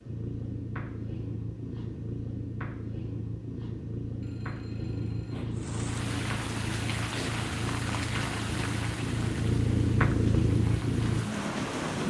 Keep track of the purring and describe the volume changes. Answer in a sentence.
The loudness of the purring goes up.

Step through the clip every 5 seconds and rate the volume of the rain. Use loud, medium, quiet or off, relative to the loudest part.
off, loud, loud.